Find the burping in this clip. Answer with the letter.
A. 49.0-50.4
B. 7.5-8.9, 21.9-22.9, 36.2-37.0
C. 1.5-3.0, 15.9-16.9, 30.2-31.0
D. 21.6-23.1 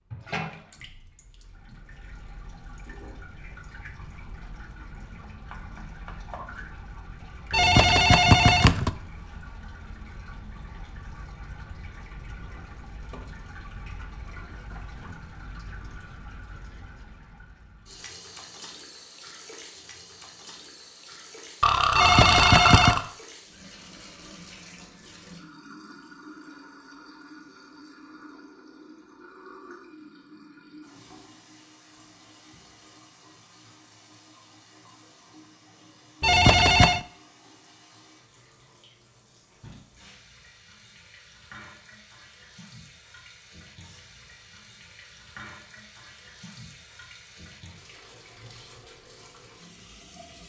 D.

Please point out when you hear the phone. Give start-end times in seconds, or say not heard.
7.5-8.9, 21.9-22.9, 36.2-37.0.